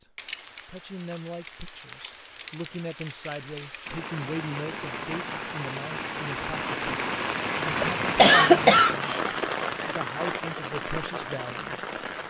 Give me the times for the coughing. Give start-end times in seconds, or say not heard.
7.8-9.2.